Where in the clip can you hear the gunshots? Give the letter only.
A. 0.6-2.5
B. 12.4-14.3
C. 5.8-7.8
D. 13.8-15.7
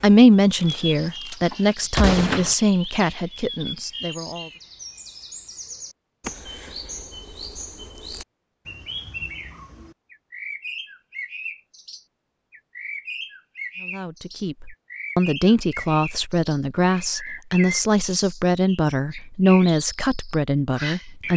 A.